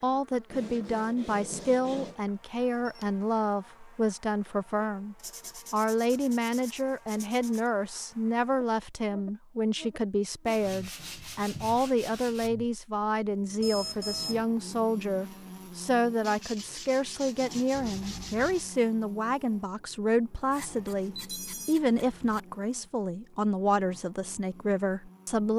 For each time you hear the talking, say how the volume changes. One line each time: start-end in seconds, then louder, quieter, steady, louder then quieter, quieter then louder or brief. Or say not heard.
0.0-25.5 steady.